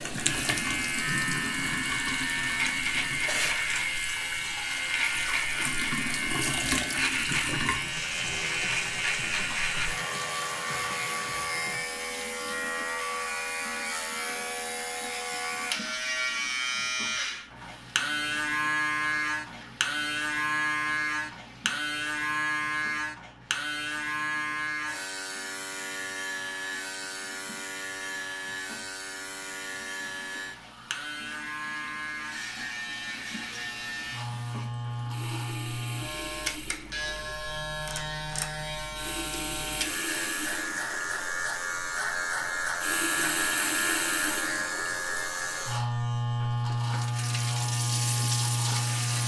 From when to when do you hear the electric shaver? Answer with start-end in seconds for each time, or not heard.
0.0-49.2.